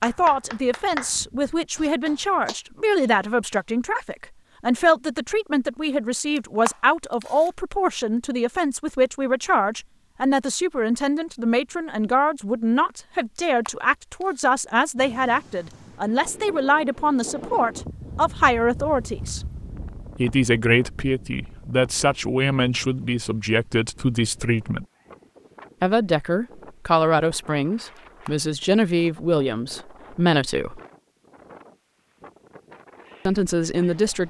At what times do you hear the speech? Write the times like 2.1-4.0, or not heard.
0.0-19.4, 20.1-24.9, 25.8-30.8, 33.2-34.2.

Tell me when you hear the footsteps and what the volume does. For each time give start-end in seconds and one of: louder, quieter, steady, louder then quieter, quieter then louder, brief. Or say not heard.
not heard.